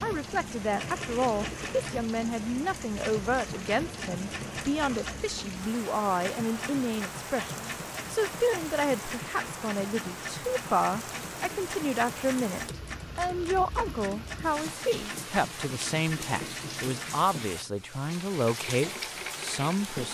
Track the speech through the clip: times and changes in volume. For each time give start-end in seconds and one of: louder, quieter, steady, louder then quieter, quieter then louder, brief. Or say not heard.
0.0-20.0 steady.